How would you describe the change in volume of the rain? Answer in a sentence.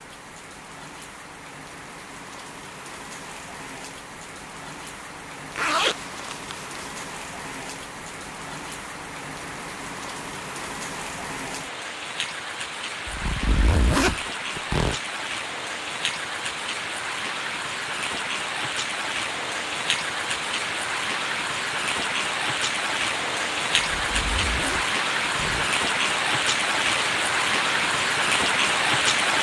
The loudness of the rain goes up.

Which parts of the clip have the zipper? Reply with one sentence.
The zipper can be heard from 5.5 to 7.0 s, from 13.1 to 14.9 s and from 23.9 to 25.7 s.